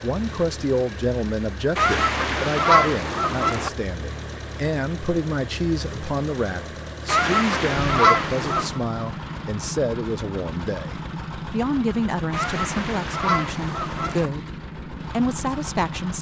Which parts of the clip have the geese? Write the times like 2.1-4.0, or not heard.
1.8-3.7, 7.0-8.8, 12.3-14.3.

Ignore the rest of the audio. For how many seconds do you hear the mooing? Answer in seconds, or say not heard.
not heard.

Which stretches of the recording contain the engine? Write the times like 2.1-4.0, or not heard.
0.0-16.1.